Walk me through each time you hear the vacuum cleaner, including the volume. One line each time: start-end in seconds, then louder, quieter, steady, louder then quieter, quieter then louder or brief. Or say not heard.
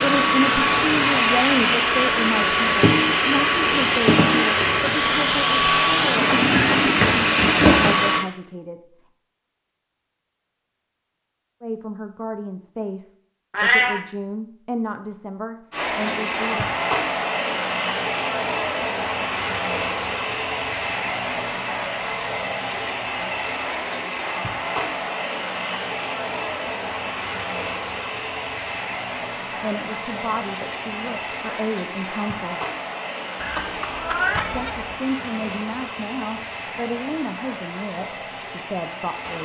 0.0-8.2 steady
15.7-39.4 quieter.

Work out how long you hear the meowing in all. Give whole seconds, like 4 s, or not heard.
4 s.